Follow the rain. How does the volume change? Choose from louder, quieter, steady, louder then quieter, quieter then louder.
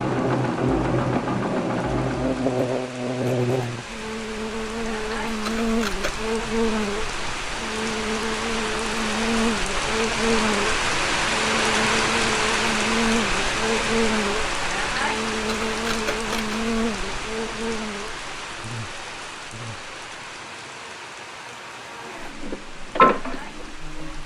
louder then quieter.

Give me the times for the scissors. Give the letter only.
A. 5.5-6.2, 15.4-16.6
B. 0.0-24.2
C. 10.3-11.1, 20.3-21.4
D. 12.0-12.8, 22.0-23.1
A.